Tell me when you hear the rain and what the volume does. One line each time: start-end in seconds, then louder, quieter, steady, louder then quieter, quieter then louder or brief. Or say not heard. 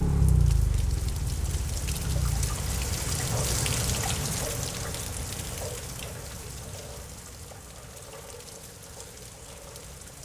0.0-10.2 louder then quieter.